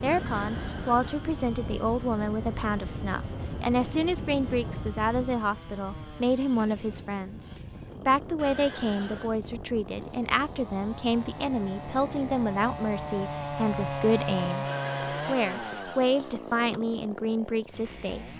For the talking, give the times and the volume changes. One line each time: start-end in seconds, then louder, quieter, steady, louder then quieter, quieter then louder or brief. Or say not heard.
0.0-18.3 steady.